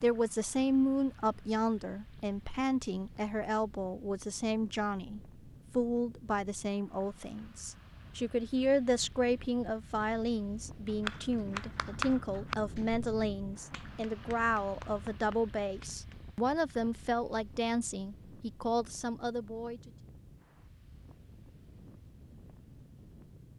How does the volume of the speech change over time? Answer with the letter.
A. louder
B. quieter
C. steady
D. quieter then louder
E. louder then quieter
C.